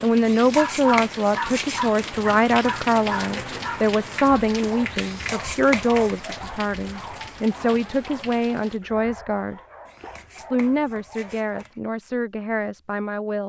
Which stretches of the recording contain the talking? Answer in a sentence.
You can hear the talking from 0.0 to 9.6 s and from 10.3 to 13.4 s.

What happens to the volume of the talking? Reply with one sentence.
The volume of the talking goes down.